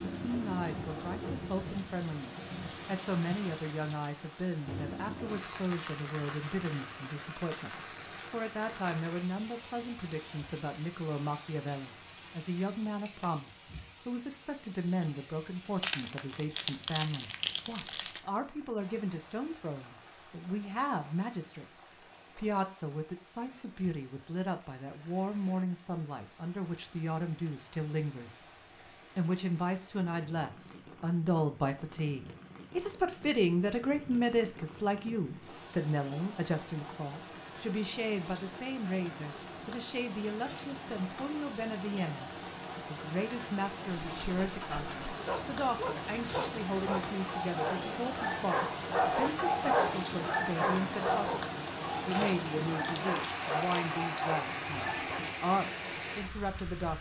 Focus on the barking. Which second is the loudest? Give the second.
50 s.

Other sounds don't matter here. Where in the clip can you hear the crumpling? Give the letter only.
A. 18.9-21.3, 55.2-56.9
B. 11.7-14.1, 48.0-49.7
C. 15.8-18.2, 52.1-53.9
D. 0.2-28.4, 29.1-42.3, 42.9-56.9
C.